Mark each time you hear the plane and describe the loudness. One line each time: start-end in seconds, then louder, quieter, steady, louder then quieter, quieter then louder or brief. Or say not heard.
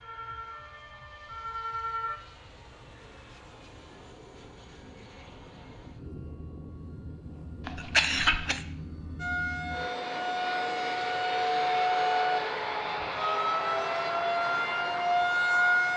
0.0-15.9 louder.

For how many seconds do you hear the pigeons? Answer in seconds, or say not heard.
not heard.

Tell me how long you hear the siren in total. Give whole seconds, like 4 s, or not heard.
9 s.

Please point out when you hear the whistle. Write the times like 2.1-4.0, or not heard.
not heard.